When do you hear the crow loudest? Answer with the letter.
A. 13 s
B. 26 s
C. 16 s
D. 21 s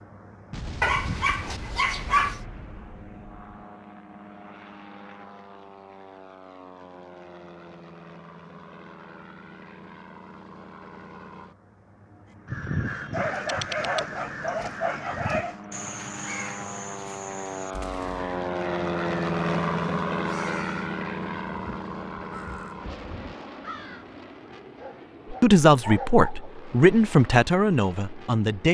A.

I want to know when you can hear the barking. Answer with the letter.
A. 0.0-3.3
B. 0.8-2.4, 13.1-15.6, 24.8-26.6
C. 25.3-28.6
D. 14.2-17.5
B.